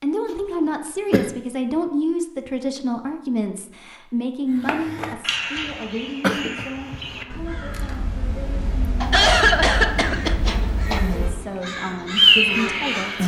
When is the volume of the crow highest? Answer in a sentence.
The volume of the crow peaks at 12 seconds.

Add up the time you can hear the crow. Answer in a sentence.
The crow can be heard for 9 seconds in total.